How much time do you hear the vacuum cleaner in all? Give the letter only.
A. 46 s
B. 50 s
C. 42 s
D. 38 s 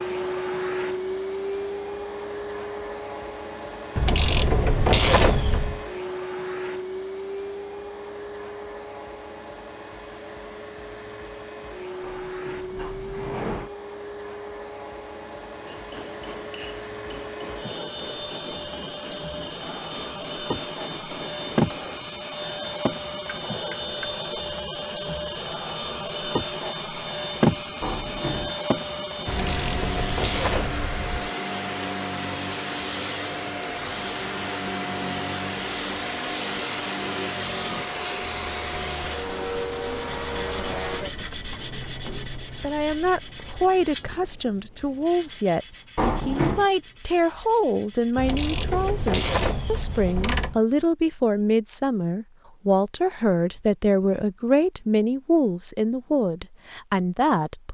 C.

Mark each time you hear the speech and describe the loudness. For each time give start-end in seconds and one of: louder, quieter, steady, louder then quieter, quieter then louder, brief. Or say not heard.
42.6-57.6 steady.